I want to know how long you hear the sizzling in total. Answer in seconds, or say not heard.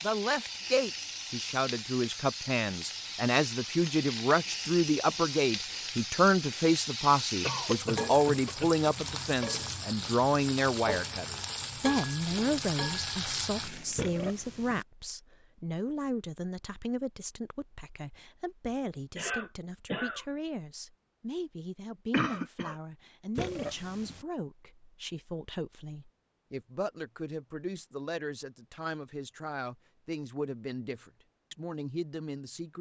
14 s.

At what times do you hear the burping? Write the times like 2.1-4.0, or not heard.
13.9-14.8, 23.4-24.2.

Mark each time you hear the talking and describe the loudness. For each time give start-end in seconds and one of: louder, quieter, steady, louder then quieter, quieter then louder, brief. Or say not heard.
0.0-32.7 quieter.